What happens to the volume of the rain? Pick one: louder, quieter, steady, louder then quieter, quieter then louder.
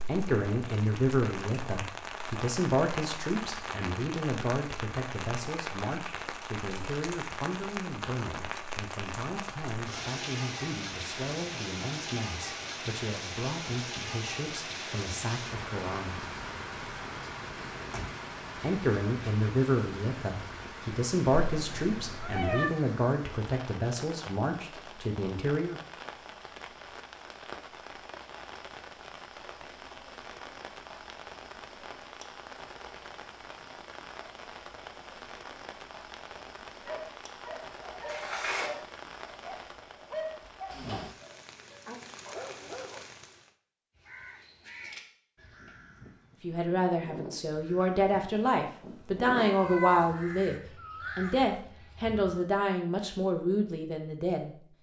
quieter.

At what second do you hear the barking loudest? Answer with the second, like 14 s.
40 s.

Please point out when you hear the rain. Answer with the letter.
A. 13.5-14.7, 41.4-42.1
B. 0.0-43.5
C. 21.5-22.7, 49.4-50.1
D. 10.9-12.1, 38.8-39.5
B.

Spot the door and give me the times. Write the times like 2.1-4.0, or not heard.
17.8-18.2, 38.0-38.8.